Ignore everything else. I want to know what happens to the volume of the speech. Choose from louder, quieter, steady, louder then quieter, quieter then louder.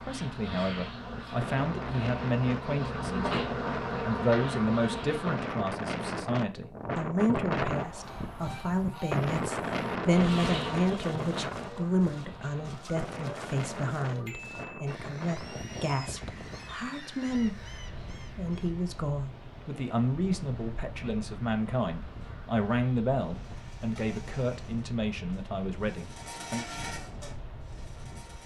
steady.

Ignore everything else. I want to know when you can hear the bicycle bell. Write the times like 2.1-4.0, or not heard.
14.2-14.8.